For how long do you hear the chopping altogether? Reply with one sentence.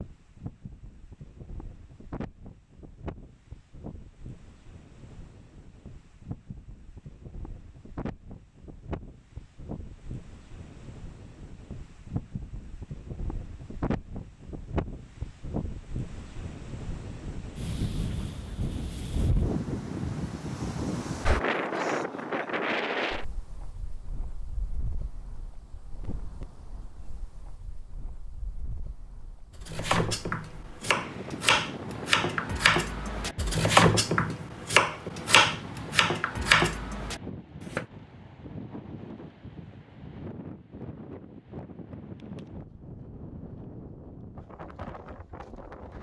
The chopping can be heard for 8 seconds in total.